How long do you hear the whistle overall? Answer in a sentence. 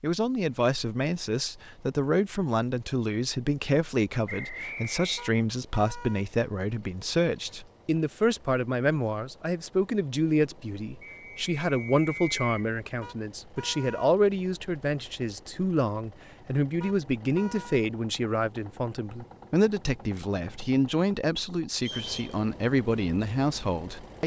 You can hear the whistle for 3 seconds altogether.